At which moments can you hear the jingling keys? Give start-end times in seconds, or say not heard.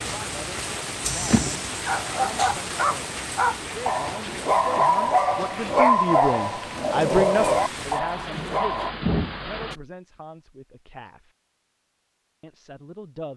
1.0-1.6.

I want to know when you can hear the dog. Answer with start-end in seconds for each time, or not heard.
1.9-8.9.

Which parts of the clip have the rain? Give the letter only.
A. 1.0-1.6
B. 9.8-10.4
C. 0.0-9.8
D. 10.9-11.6
C.